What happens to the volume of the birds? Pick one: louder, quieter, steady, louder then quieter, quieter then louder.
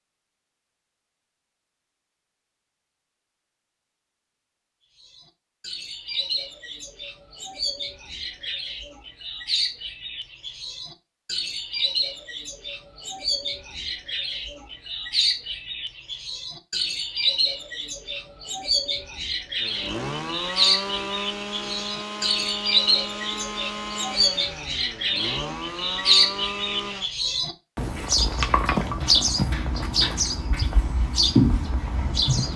louder.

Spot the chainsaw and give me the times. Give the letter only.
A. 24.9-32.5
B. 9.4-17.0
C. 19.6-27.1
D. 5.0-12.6
C.